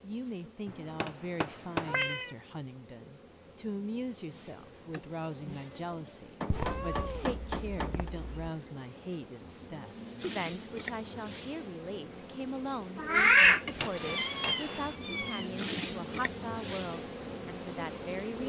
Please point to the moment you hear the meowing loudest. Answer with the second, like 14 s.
13 s.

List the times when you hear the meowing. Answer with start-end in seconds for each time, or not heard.
1.9-2.4, 6.5-8.5, 12.9-15.4.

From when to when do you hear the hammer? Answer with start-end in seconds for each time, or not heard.
0.7-2.0, 6.4-8.1, 13.8-14.9.